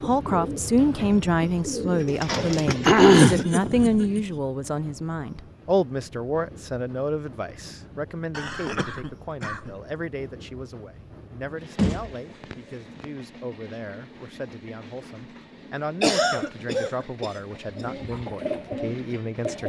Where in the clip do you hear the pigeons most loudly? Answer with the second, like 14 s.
3 s.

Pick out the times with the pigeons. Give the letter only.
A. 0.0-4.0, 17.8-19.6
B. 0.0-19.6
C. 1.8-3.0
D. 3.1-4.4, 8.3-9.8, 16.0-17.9
A.